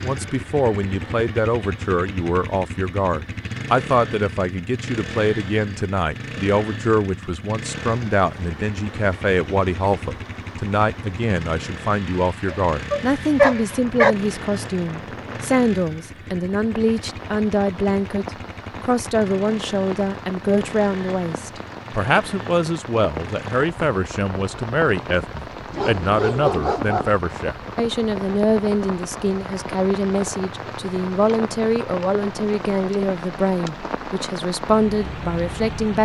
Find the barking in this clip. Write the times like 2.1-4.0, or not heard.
12.7-14.2, 25.7-27.2.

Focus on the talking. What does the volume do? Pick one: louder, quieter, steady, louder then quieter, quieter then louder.
steady.